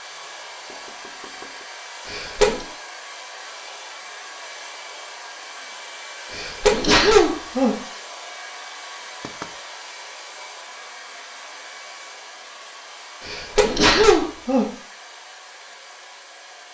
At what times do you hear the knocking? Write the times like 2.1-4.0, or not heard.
0.1-1.6, 9.2-9.6.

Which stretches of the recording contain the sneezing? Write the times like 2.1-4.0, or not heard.
2.0-2.6, 6.3-7.8, 13.2-14.7.